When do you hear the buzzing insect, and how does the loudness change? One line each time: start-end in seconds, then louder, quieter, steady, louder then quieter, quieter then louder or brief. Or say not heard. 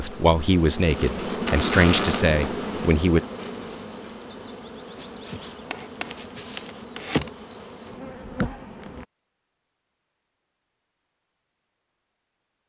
0.0-9.1 quieter then louder.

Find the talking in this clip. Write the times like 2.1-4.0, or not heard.
0.0-3.2.